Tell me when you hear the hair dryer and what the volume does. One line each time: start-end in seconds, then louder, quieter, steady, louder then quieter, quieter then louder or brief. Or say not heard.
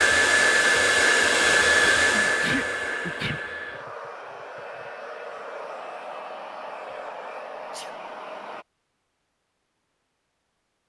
0.0-8.7 quieter.